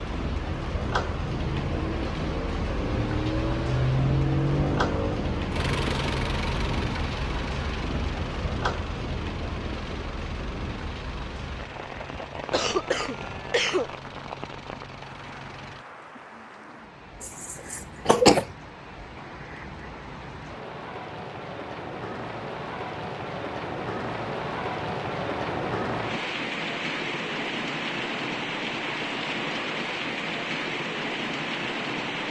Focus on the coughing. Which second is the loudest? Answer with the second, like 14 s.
18 s.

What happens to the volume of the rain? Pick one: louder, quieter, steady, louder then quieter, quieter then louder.
quieter then louder.